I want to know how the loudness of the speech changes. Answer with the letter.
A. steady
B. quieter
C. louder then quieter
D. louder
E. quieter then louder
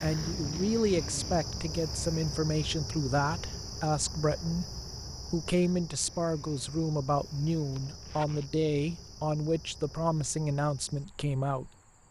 A.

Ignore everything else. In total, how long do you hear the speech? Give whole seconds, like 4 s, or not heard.
12 s.